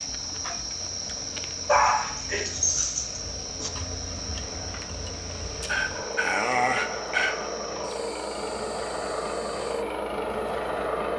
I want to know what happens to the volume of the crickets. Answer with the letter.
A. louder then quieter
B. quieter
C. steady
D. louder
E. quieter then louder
B.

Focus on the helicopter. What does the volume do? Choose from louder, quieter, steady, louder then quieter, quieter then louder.
louder.